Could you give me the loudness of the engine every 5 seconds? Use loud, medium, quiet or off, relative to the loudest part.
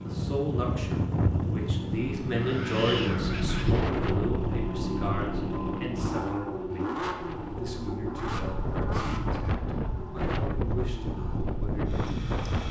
loud, loud, medium.